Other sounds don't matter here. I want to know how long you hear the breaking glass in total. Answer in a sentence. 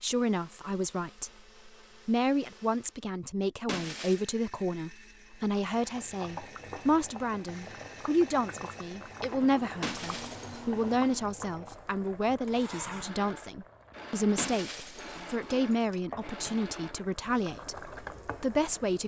You can hear the breaking glass for 3 seconds altogether.